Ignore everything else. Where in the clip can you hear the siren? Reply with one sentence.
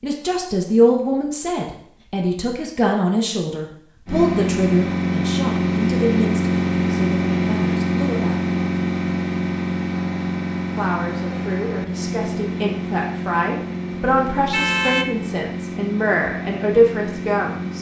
The siren can't be heard in this clip.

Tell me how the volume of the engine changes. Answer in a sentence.
The volume of the engine goes down.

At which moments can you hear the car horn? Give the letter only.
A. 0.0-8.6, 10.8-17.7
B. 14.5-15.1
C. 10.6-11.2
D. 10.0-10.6
B.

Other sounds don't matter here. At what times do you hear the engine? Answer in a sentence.
You can hear the engine from 4.0 to 17.7 s.